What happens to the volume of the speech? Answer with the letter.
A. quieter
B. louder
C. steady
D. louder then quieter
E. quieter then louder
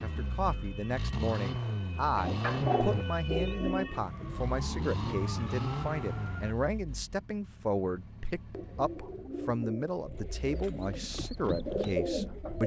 C.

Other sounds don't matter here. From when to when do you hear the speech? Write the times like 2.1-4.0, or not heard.
0.0-12.6.